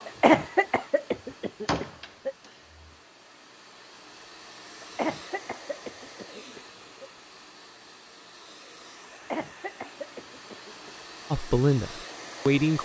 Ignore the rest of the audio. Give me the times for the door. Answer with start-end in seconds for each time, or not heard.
1.6-2.9.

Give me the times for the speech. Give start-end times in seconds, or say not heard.
11.3-12.8.